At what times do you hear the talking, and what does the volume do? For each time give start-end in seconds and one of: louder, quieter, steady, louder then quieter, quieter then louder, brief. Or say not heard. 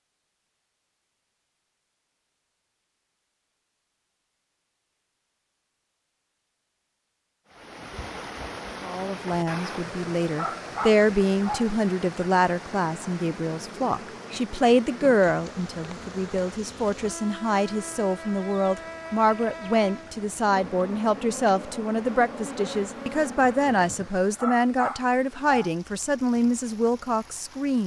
8.8-27.8 steady.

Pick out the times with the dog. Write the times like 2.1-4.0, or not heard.
10.3-11.7, 24.4-25.8.